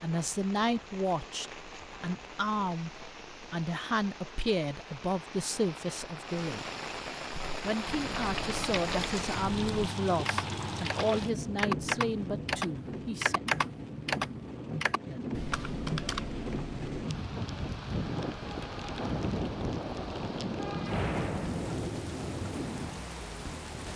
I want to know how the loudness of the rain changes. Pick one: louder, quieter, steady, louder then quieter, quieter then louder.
louder.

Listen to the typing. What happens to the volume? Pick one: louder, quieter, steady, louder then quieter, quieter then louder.
louder then quieter.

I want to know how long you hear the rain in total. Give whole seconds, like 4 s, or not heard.
24 s.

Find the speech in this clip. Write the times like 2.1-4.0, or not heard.
0.0-6.7, 7.6-13.4.